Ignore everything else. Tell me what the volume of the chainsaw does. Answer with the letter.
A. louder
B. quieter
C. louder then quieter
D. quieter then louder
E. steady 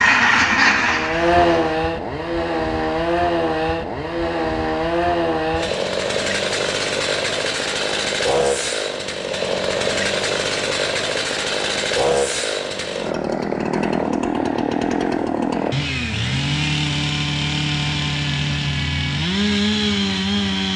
E.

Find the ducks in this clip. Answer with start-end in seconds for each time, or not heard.
0.0-1.8.